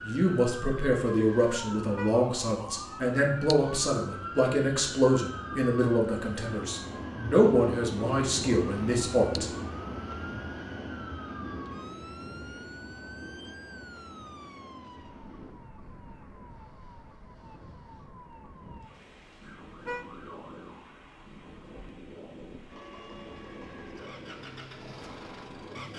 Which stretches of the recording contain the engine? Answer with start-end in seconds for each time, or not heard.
22.7-25.9.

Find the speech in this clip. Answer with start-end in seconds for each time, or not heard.
0.0-9.5.